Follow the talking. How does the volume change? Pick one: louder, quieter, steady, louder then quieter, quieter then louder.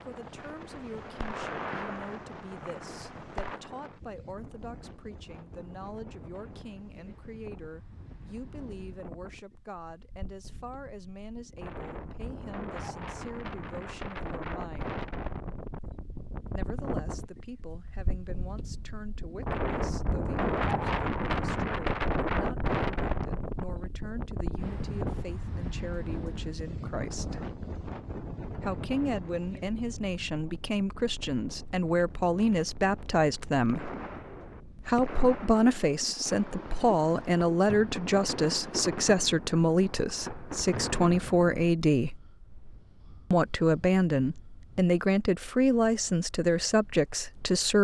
louder.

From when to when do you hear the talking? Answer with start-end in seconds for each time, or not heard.
0.0-15.0, 16.4-27.5, 28.6-33.9, 34.9-42.1, 43.3-47.8.